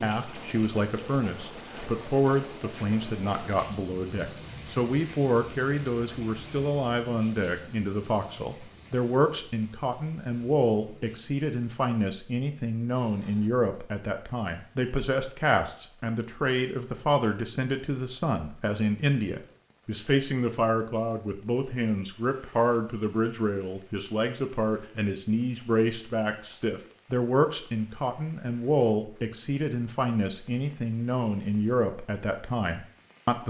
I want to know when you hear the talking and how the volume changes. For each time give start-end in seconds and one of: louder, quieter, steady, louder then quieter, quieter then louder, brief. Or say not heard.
0.0-33.4 steady.